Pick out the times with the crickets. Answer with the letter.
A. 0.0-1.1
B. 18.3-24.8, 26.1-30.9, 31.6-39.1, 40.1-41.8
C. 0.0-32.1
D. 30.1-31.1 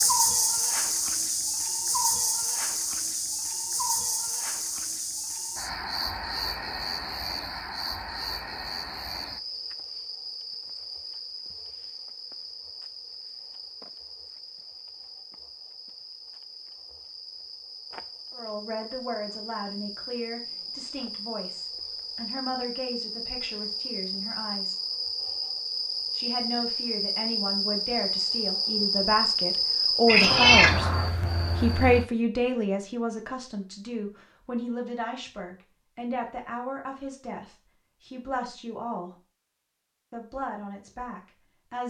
C.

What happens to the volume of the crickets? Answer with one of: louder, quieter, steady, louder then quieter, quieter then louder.
quieter then louder.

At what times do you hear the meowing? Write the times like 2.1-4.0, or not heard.
30.1-31.1.